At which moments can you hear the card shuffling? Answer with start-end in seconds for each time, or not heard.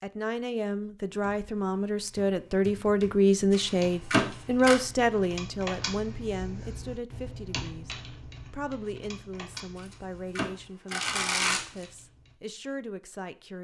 3.5-4.8, 9.8-11.8.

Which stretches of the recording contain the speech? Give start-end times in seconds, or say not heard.
0.0-13.5.